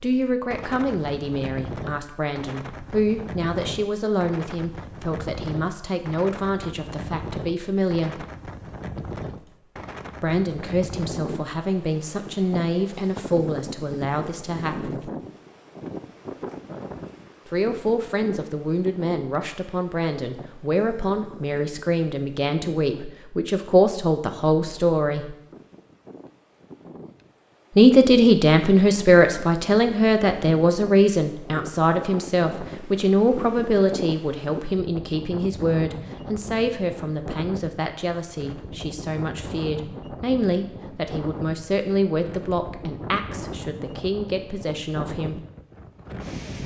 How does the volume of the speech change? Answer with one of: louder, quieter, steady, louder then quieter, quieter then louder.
louder then quieter.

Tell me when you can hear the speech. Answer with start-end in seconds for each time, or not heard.
0.0-8.2, 10.2-15.1, 17.4-25.4, 27.8-45.4.